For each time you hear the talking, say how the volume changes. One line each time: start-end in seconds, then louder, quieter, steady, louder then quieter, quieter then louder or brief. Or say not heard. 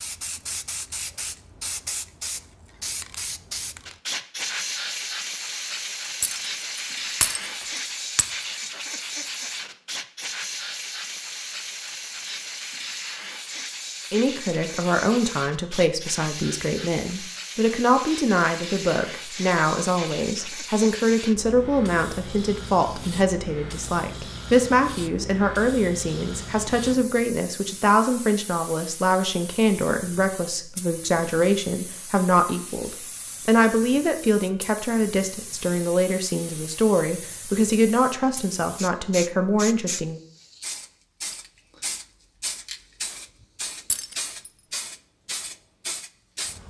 14.1-40.2 steady.